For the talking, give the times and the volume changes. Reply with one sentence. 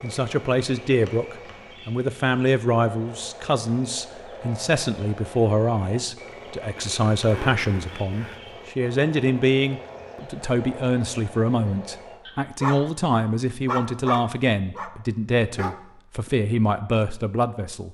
You can hear the talking from 0.0 to 17.8 s, at a steady volume.